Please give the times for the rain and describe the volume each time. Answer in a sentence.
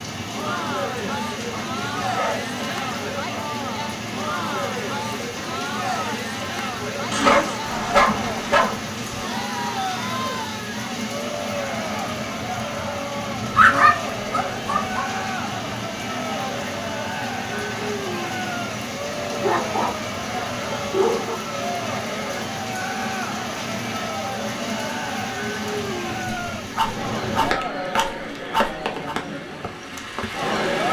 The rain can be heard from 0.0 to 30.8 s, at a steady volume.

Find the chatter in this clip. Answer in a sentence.
The chatter can be heard from 0.1 to 30.8 s.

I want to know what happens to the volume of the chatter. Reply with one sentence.
The volume of the chatter stays about the same.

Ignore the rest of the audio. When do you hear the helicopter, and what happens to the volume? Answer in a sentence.
You can't hear the helicopter here.